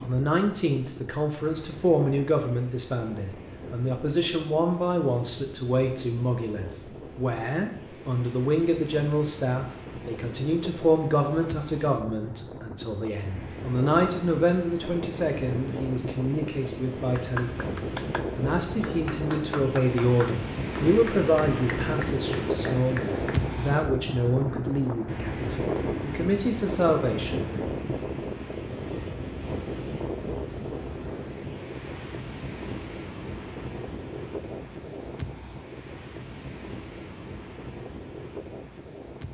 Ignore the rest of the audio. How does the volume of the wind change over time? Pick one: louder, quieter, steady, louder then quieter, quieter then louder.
louder then quieter.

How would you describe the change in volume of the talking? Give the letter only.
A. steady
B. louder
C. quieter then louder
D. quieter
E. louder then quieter
A.